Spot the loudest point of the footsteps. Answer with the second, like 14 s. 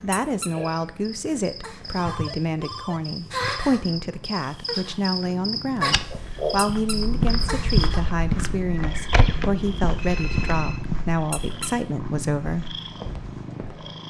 8 s.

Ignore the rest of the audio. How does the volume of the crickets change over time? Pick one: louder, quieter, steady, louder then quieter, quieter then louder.
louder.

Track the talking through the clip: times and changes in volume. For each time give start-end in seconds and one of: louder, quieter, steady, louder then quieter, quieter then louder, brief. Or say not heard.
0.0-12.8 steady.